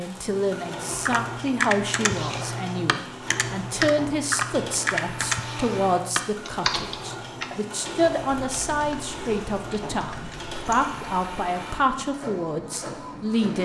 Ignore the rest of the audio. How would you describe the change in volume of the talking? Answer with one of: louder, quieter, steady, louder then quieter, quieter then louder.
steady.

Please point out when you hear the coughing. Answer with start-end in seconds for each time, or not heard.
not heard.